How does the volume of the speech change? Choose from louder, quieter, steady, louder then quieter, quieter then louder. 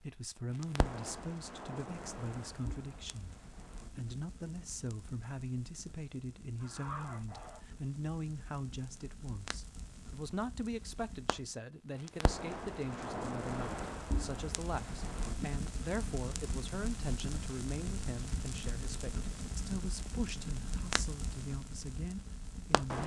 steady.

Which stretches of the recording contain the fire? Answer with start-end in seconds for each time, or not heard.
0.5-23.0.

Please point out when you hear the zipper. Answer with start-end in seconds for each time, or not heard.
6.6-7.6.